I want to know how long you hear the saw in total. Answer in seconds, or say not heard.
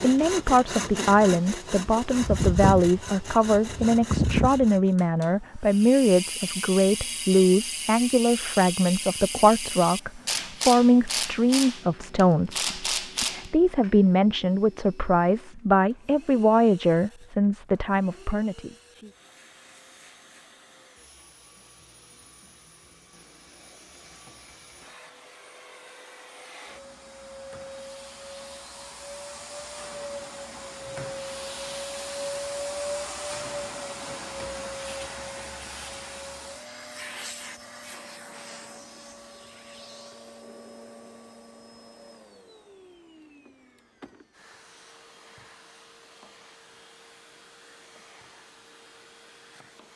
5 s.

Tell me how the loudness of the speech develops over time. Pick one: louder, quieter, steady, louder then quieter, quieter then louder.
steady.